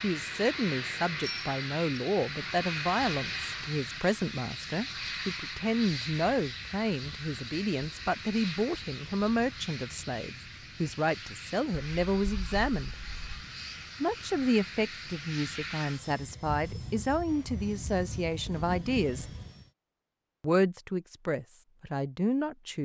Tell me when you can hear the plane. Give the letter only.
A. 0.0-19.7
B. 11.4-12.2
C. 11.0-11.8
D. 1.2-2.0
A.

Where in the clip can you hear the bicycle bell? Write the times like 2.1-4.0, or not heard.
1.2-2.0.